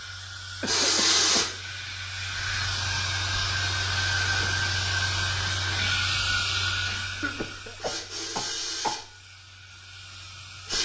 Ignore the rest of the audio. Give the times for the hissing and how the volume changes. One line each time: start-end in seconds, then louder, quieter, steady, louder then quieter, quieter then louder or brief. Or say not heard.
0.0-10.8 quieter.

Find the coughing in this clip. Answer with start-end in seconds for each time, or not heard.
0.6-1.6, 7.2-9.1.